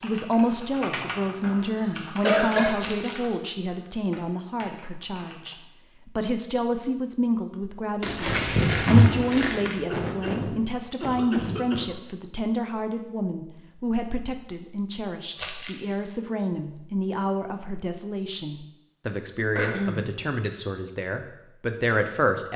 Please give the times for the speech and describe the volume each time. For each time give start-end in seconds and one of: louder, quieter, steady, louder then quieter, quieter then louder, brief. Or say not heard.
0.0-22.5 steady.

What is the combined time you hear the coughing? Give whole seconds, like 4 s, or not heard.
3 s.